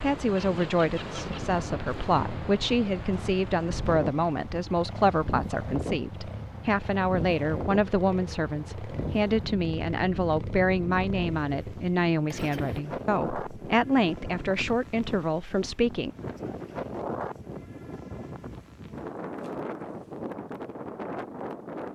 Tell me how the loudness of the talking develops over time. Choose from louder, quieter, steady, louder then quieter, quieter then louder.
steady.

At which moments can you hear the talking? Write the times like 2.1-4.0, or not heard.
0.0-16.1.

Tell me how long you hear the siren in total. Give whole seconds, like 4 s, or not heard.
not heard.